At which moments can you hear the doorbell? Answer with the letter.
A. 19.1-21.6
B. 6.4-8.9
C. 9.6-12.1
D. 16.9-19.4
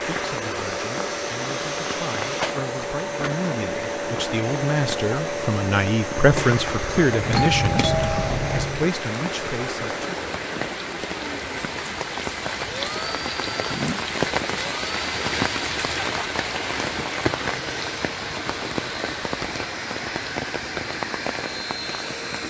B.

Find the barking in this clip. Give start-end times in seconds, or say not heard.
not heard.